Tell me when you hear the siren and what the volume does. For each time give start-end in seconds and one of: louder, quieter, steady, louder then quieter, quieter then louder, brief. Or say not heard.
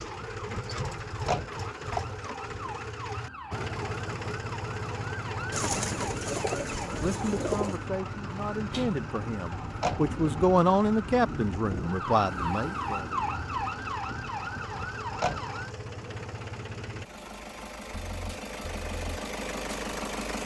0.0-15.7 louder.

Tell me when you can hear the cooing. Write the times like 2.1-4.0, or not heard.
5.5-7.8.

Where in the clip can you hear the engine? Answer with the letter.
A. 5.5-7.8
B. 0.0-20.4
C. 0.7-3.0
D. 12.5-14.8
B.